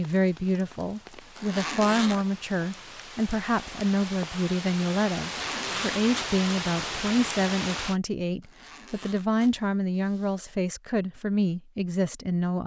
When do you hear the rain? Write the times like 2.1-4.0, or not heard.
0.0-8.0.